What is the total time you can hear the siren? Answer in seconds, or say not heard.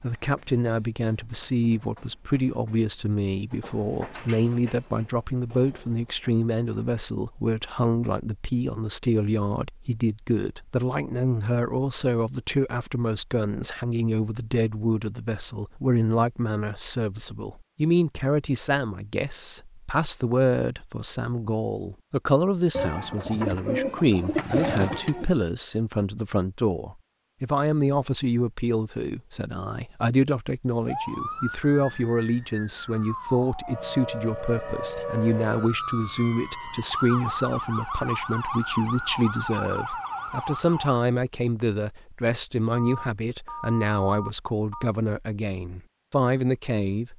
10 s.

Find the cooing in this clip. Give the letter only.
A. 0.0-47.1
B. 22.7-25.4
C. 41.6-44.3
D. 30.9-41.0
B.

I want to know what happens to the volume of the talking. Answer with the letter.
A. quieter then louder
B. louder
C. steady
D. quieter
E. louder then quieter
C.